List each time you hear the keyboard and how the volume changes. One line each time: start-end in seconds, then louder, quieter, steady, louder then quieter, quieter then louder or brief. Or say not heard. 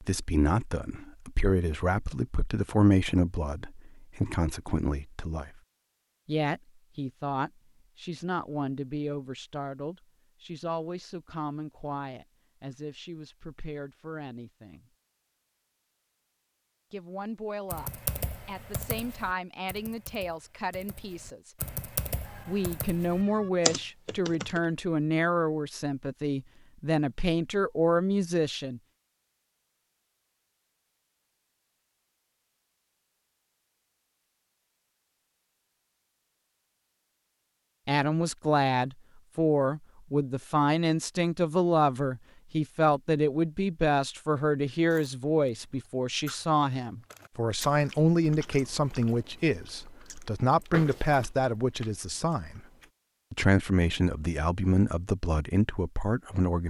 17.7-24.6 quieter then louder.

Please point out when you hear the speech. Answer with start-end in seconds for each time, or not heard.
0.0-5.6, 6.2-14.9, 16.9-21.6, 22.4-28.8, 37.9-52.6, 53.3-56.6.